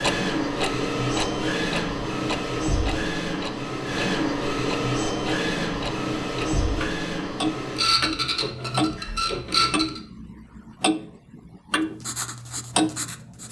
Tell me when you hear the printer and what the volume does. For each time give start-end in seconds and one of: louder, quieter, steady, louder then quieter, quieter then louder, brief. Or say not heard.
0.0-10.0 steady.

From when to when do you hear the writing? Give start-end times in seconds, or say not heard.
11.8-13.4.